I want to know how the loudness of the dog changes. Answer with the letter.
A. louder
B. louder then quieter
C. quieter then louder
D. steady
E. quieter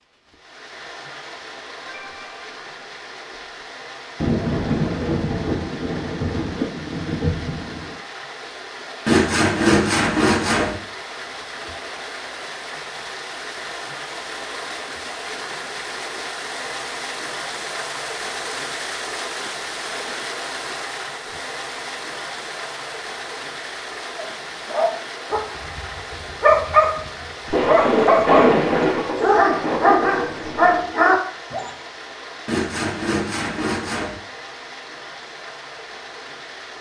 A.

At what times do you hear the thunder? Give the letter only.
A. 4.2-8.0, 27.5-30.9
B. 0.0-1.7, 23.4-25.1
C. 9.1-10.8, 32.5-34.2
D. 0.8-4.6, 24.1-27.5
A.